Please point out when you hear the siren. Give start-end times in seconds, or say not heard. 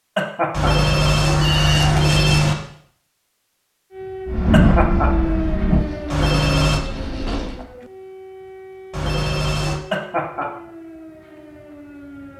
3.9-12.3.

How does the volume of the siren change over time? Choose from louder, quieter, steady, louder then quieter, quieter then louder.
quieter.